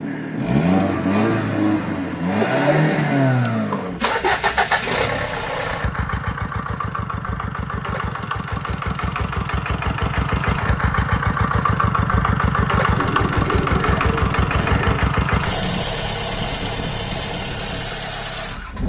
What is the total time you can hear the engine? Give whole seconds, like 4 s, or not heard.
19 s.